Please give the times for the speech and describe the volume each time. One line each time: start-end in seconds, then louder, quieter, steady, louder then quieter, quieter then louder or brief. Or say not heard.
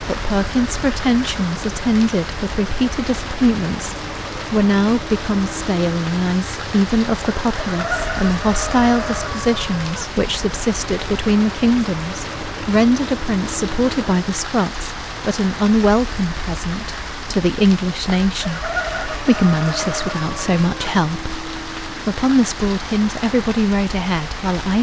0.0-24.7 steady.